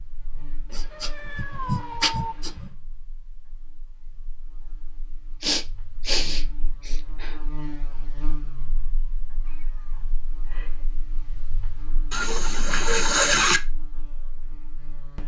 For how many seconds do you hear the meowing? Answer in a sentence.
The meowing can be heard for 3 seconds in total.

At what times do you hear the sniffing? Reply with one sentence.
You can hear the sniffing from 0.7 to 2.7 s, from 5.4 to 7.3 s and from 12.1 to 13.6 s.